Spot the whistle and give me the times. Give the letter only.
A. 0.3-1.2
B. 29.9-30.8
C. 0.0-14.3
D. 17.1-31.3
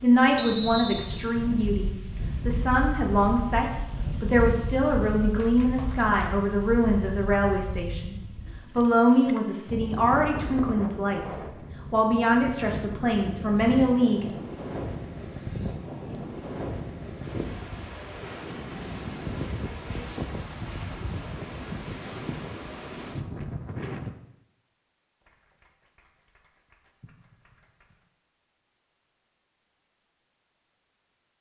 A.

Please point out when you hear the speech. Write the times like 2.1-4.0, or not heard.
0.0-14.3.